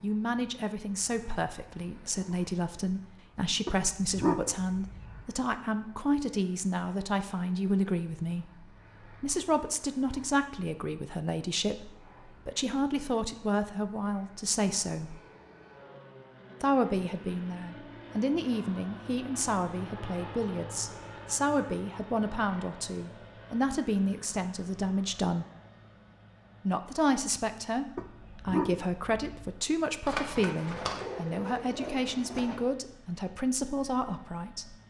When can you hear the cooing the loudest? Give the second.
30 s.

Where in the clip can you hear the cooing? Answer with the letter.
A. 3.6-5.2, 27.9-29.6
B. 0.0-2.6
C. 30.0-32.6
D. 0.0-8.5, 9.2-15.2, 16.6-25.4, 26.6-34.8
C.